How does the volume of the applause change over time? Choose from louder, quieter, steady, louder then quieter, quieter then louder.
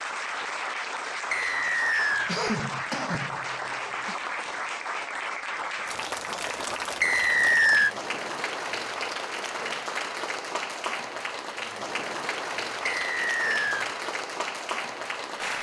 steady.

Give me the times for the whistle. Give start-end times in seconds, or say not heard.
1.3-2.4, 7.0-7.9, 12.8-13.8.